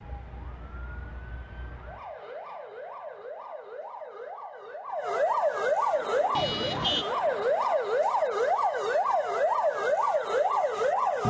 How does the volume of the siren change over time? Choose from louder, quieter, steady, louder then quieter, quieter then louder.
louder.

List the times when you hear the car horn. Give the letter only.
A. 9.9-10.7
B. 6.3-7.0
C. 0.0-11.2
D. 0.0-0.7
B.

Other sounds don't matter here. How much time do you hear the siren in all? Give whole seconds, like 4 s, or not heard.
11 s.